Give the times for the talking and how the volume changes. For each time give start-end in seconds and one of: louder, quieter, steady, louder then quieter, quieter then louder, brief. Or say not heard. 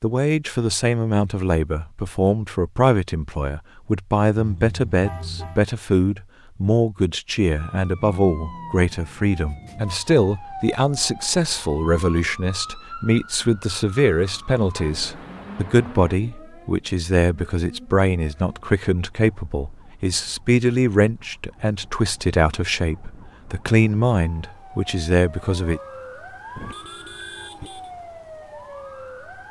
0.0-25.8 steady.